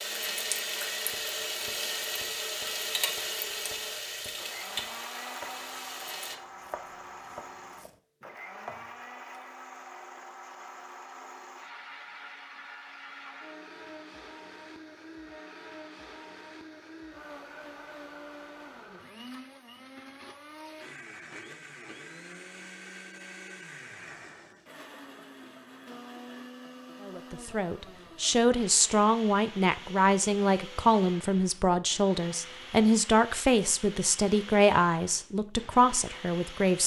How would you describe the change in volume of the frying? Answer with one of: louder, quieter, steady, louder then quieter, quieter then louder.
quieter.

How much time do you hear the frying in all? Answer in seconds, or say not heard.
6 s.